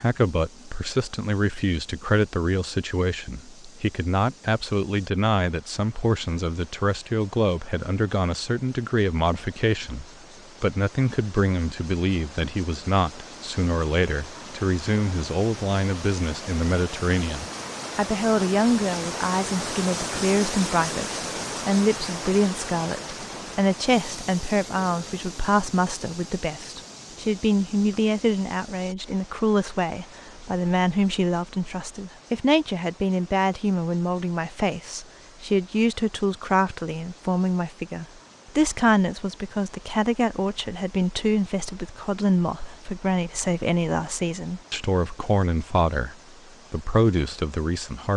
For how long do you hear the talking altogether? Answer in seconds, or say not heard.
48 s.